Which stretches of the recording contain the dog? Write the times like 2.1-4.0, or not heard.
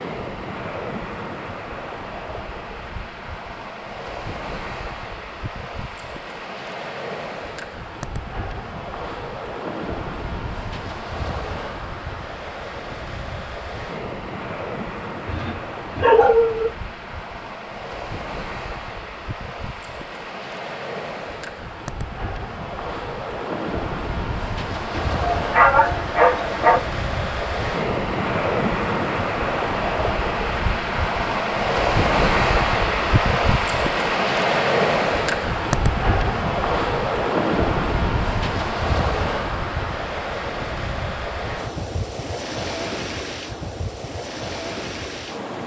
15.2-16.7, 24.9-26.8.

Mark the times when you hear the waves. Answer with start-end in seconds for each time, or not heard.
0.0-45.6.